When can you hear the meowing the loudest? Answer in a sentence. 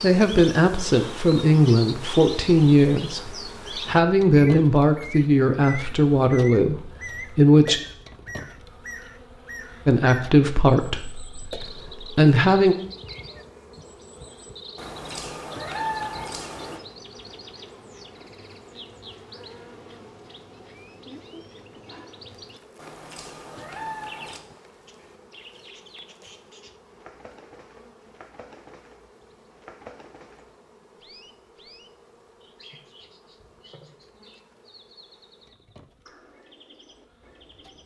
The volume of the meowing peaks at 16 seconds.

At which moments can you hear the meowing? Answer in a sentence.
The meowing can be heard from 14.8 to 16.8 s and from 22.8 to 24.4 s.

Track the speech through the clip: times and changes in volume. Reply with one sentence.
The speech can be heard from 0.0 to 7.8 s, at a steady volume; and briefly from 9.8 to 12.8 s.